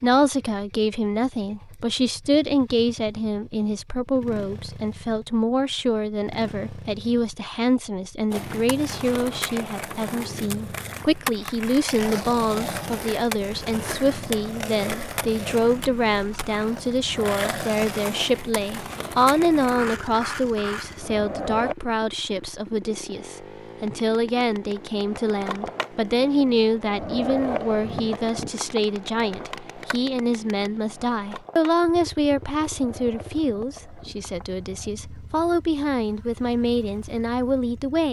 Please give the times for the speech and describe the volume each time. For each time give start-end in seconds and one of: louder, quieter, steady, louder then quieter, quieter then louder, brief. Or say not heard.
0.0-38.0 steady.